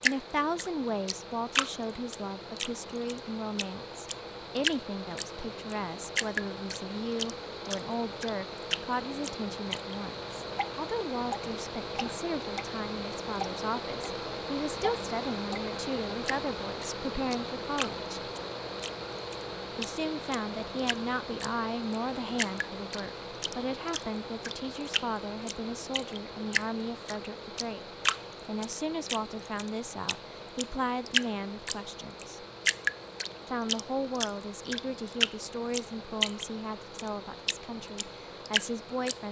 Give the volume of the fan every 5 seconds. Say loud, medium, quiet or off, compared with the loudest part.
medium, loud, loud, loud, loud, medium, medium, medium.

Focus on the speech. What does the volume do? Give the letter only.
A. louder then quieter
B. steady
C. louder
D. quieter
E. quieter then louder
B.